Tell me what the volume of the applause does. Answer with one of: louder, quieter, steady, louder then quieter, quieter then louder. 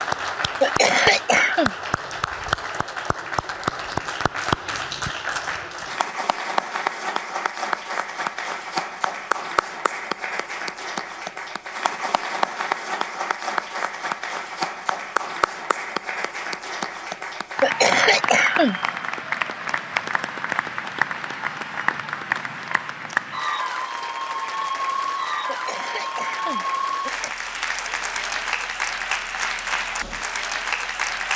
steady.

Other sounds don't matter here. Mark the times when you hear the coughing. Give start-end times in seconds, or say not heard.
0.6-1.7, 17.6-18.8, 25.4-27.4.